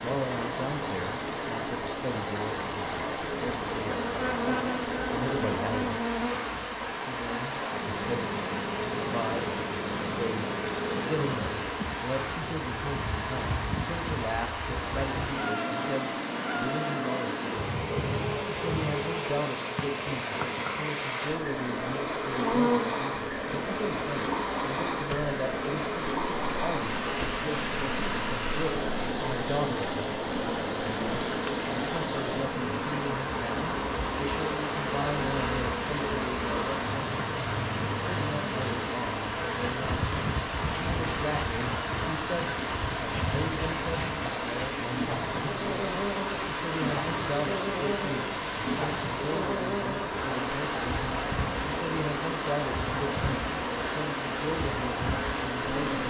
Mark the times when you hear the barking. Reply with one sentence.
You can't hear the barking here.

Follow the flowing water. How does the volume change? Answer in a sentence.
The loudness of the flowing water stays about the same.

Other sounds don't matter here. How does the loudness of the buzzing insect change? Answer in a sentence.
The volume of the buzzing insect stays about the same.